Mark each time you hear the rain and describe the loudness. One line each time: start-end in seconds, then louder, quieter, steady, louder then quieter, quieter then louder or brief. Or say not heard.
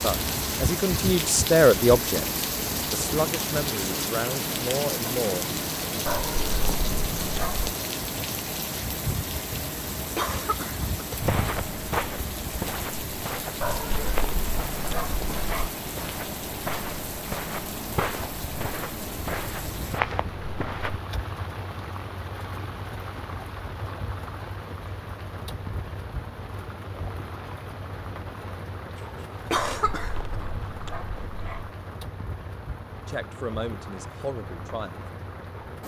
0.0-35.8 quieter.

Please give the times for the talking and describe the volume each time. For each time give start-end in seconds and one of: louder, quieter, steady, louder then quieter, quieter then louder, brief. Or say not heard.
0.0-5.5 louder then quieter
33.0-35.0 brief.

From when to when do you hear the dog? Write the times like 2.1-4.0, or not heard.
6.0-7.8, 13.6-15.7, 29.6-31.7.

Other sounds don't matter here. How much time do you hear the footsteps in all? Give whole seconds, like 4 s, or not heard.
10 s.